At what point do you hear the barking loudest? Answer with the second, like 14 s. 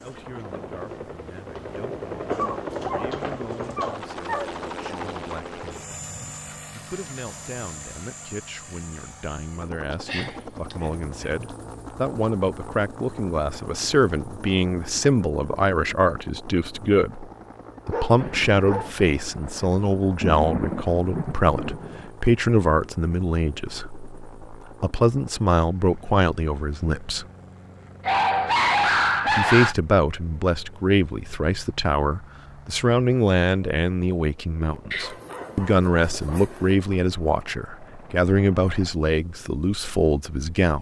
29 s.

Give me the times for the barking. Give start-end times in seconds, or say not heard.
2.4-3.1, 3.8-4.5, 9.9-10.9, 17.9-18.9, 28.0-29.8, 34.9-36.7.